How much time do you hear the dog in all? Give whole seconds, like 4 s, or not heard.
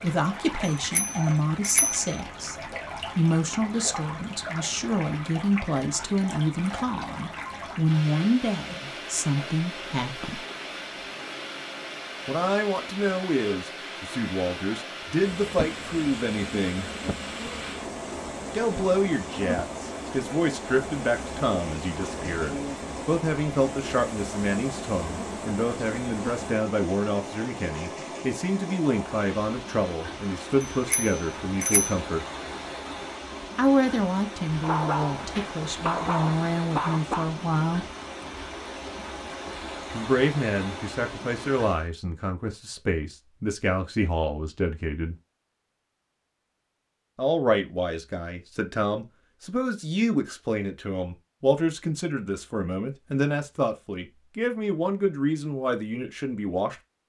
3 s.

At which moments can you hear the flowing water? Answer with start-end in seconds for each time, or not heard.
0.0-41.9.